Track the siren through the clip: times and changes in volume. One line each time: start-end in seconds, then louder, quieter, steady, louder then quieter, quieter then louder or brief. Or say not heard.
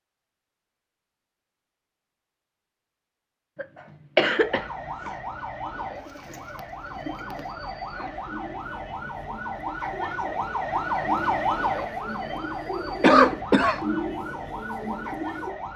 4.3-15.7 louder then quieter.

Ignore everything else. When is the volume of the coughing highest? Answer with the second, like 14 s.
13 s.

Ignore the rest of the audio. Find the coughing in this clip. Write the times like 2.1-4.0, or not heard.
3.6-5.1, 13.0-13.8.